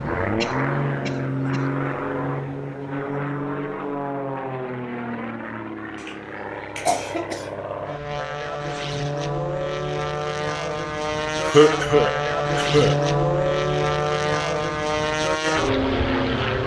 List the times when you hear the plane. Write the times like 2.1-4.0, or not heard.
0.0-16.6.